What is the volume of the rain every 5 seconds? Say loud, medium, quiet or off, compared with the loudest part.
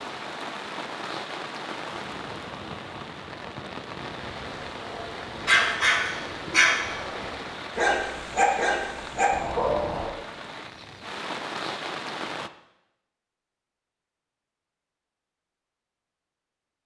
loud, loud, loud, off.